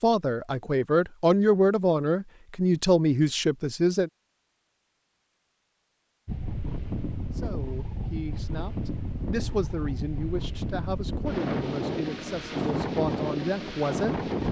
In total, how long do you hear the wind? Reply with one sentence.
The wind can be heard for 8 seconds in total.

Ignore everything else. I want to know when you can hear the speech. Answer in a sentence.
The speech can be heard from 0.0 to 4.1 s and from 7.3 to 14.3 s.